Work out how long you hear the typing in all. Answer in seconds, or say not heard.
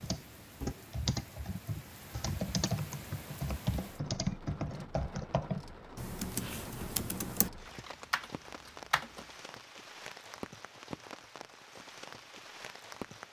9 s.